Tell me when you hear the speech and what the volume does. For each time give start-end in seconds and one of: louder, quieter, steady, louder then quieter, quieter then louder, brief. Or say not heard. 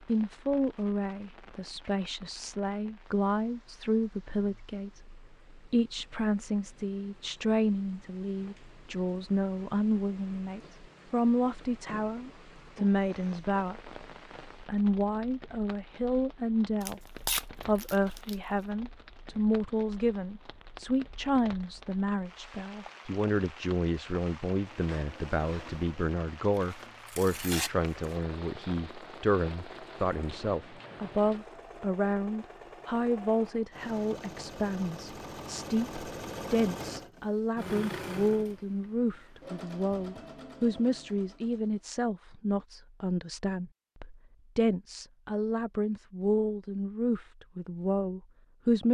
0.1-48.8 steady.